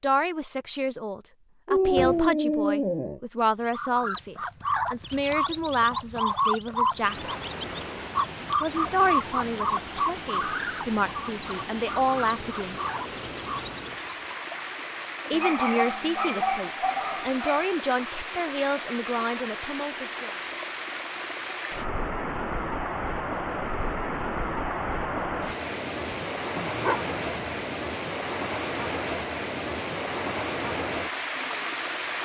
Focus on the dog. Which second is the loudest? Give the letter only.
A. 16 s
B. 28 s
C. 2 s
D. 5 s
C.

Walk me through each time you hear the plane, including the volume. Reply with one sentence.
You can't hear the plane here.